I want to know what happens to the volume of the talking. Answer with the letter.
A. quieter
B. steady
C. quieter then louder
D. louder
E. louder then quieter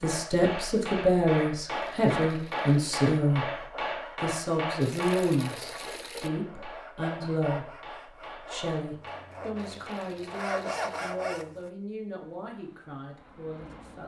A.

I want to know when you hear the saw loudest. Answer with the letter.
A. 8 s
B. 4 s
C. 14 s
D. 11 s
D.